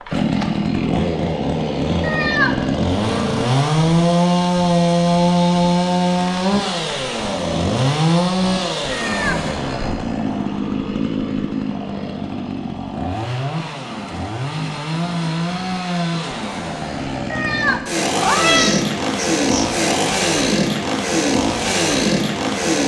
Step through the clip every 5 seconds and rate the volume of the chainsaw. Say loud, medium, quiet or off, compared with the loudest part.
loud, loud, medium, loud, loud.